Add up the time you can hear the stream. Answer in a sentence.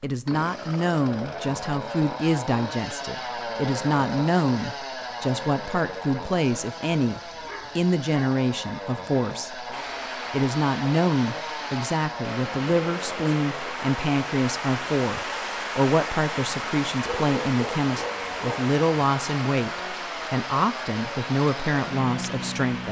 The stream can be heard for 13 seconds in total.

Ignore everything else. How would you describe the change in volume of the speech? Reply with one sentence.
The volume of the speech stays about the same.